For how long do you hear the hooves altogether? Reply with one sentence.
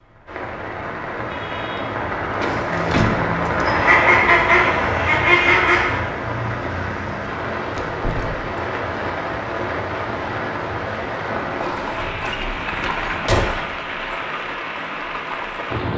The hooves can be heard for 4 seconds in total.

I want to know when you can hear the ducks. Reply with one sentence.
The ducks can be heard from 3.6 to 6.0 s.